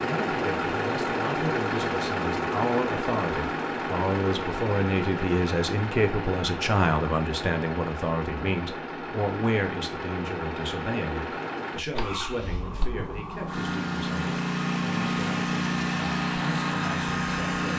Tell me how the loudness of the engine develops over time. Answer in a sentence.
The loudness of the engine goes down, then up.